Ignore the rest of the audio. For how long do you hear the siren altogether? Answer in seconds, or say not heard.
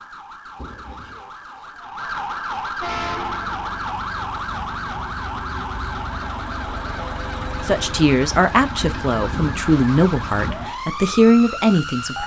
12 s.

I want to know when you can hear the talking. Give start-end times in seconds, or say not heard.
7.7-12.2.